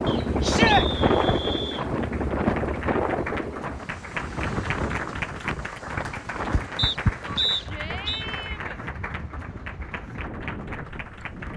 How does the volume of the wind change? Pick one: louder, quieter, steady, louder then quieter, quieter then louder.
quieter.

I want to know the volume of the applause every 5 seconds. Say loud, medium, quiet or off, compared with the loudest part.
loud, loud, medium.